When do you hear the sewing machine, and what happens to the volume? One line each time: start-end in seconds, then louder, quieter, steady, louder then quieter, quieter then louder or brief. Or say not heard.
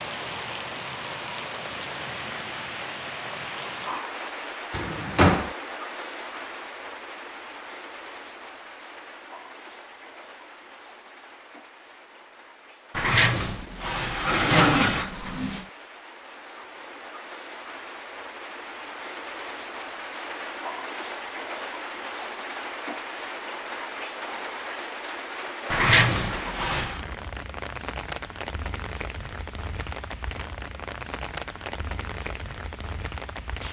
not heard.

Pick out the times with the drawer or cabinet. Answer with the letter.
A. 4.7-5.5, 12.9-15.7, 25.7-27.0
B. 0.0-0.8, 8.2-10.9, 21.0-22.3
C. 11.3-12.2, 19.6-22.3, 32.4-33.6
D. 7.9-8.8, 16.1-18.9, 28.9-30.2
A.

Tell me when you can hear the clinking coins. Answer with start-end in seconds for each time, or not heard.
not heard.